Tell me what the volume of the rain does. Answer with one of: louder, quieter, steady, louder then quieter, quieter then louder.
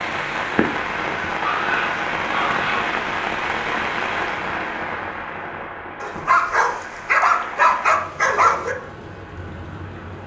quieter.